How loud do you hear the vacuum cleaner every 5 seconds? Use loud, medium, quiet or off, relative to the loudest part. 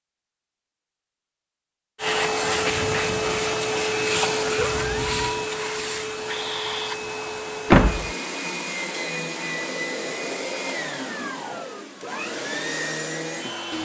loud, medium, medium.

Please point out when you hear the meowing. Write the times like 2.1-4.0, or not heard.
4.5-5.5.